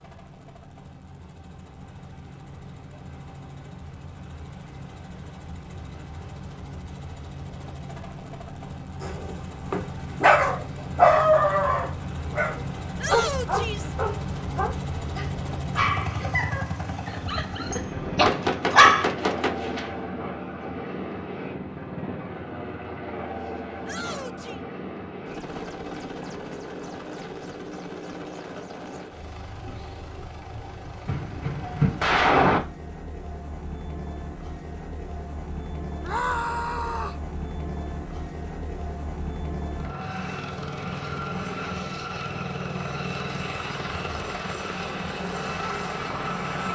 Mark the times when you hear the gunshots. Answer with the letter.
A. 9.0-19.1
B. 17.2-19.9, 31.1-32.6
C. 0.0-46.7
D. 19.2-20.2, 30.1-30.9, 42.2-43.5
B.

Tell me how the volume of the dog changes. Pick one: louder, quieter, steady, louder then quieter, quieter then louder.
quieter.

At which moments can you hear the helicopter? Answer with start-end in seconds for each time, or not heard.
0.0-46.7.